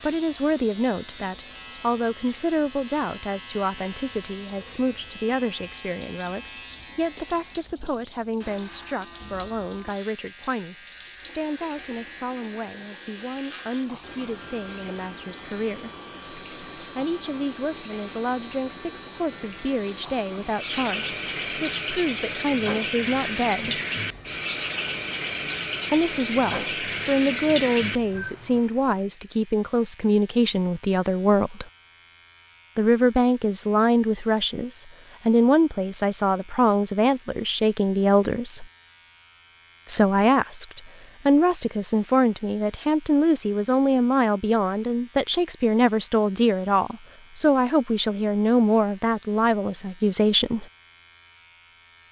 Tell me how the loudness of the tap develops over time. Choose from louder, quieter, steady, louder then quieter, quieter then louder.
louder.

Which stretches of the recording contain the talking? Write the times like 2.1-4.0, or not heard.
0.0-15.9, 16.9-23.8, 25.9-31.6, 32.8-38.6, 39.9-50.6.